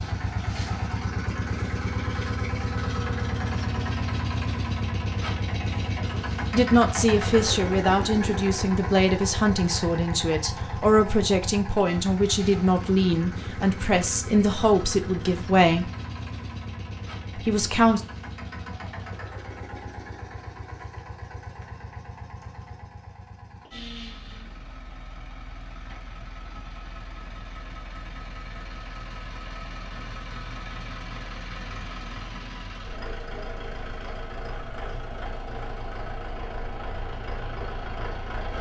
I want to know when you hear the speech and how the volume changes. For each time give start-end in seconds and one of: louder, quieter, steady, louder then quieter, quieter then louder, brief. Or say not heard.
6.5-15.8 steady
17.4-18.0 brief.